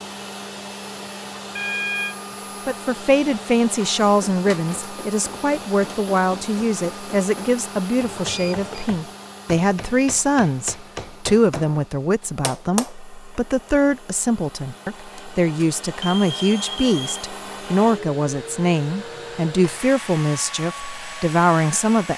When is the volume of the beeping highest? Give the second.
2 s.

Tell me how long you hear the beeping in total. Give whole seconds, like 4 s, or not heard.
3 s.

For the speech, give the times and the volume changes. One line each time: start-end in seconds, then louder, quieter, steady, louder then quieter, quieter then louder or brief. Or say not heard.
2.6-22.1 steady.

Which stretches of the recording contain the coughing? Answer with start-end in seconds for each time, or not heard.
not heard.